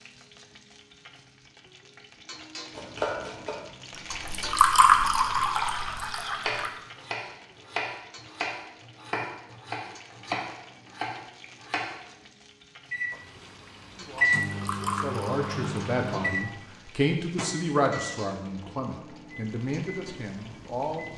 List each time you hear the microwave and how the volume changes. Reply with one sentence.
You can hear the microwave from 12.9 to 21.1 s, getting quieter.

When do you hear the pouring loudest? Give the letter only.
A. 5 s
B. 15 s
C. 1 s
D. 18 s
A.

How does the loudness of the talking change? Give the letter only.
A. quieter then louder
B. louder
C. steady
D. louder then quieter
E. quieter
D.